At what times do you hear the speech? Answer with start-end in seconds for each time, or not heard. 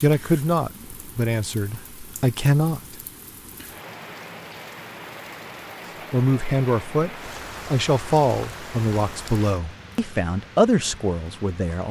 0.0-3.0, 6.1-11.8.